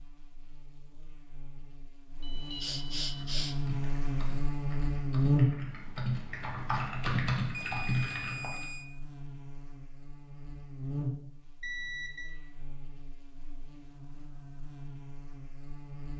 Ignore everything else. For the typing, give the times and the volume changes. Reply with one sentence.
The typing can be heard from 3.1 to 8.7 s, getting louder.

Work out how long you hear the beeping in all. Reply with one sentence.
You can hear the beeping for 3 seconds altogether.